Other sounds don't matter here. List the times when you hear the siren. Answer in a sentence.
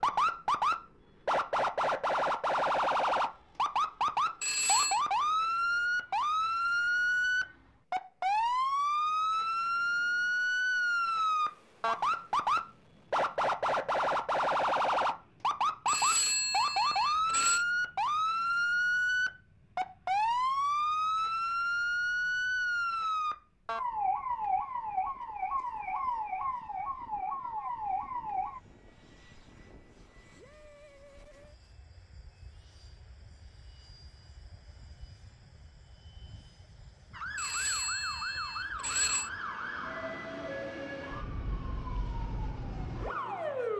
The siren can be heard from 0.0 to 28.6 s and from 37.1 to 43.7 s.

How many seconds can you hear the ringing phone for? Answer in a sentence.
You can hear the ringing phone for 4 seconds altogether.